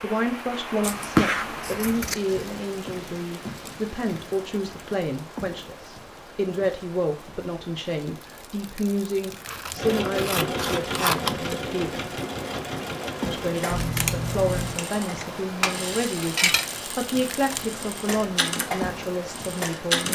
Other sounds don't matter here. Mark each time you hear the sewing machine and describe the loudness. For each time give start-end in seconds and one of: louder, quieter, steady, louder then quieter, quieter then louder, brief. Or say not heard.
9.8-20.1 quieter then louder.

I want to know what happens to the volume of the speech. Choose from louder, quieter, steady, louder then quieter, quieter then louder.
steady.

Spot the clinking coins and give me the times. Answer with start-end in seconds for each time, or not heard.
15.2-16.7.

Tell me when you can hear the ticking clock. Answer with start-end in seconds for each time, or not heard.
not heard.